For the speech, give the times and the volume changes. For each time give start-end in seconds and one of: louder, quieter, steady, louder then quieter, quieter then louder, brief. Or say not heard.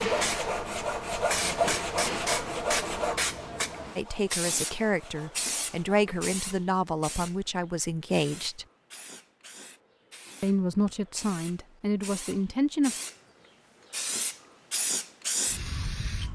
4.0-8.7 quieter then louder
10.4-12.9 brief.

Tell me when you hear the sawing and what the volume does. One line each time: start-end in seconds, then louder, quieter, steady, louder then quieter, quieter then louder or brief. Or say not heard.
0.0-6.3 quieter.